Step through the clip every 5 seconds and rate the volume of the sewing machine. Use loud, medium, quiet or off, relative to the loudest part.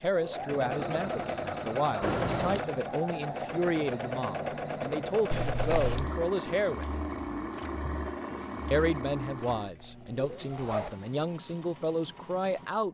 loud, loud, quiet.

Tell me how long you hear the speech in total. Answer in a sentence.
The speech can be heard for 11 seconds in total.